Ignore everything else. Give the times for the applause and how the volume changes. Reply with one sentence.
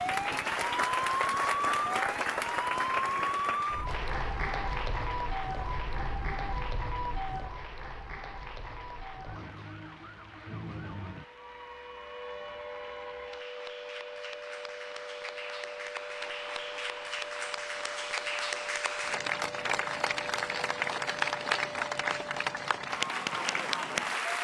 You can hear the applause from 0.0 to 24.3 s, getting quieter then louder.